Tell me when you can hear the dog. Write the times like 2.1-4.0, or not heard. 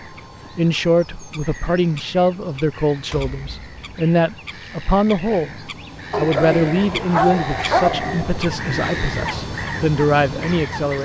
6.1-8.4.